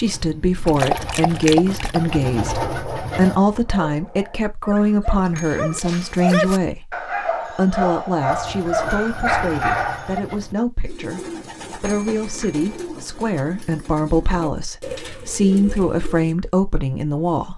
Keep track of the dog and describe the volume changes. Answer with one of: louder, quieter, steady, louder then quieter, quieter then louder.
quieter then louder.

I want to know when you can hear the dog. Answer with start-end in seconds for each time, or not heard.
0.7-10.2.